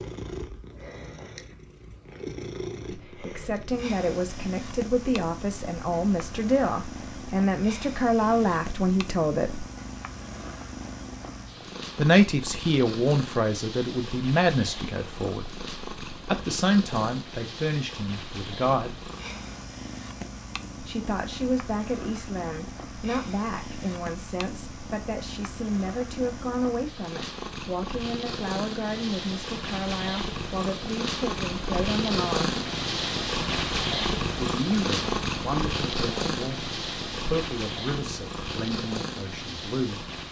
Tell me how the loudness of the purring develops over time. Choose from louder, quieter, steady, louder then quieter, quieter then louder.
louder.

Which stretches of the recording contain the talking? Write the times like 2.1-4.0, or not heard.
2.9-9.7, 11.9-19.1, 20.8-32.5, 34.4-40.0.